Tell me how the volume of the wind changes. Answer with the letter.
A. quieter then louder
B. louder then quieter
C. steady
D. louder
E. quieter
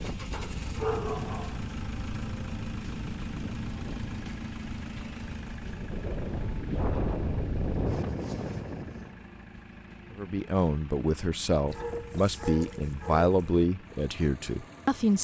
D.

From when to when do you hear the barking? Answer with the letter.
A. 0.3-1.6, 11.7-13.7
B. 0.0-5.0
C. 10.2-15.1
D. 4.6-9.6
A.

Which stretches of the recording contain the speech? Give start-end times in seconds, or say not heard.
10.2-15.1.